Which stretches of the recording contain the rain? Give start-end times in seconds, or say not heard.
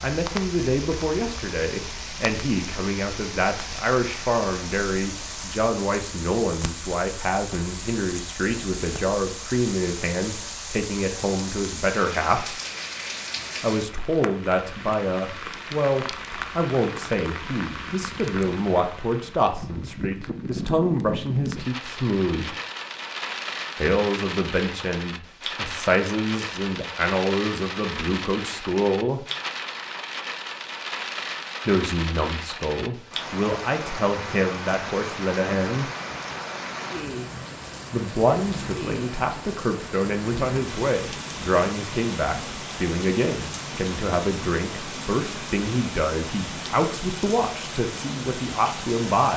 0.0-49.3.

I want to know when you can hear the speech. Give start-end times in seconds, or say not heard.
0.0-12.6, 13.6-22.6, 23.8-29.2, 31.6-35.9, 37.9-49.3.